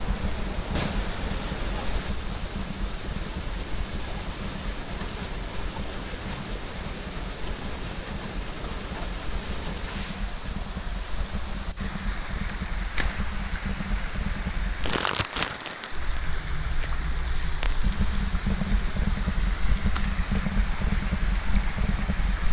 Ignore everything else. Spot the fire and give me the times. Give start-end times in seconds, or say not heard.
0.0-22.4.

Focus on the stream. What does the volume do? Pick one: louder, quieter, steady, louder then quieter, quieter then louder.
steady.